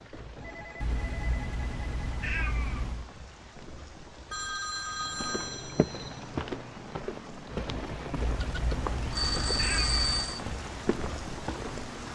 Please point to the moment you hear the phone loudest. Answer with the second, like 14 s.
10 s.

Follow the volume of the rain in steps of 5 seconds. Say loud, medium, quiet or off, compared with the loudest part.
medium, loud, loud.